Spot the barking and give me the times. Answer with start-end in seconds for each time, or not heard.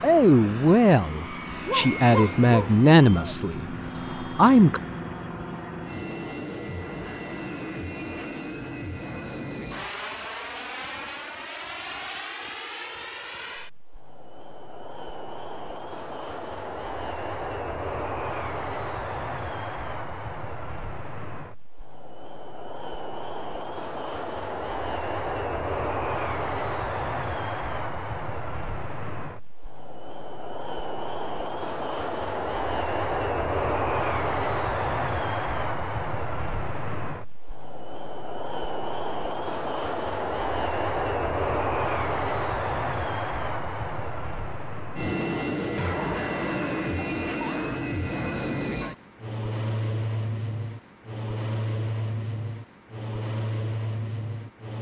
1.6-3.4, 45.8-47.8.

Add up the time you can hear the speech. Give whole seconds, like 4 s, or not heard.
5 s.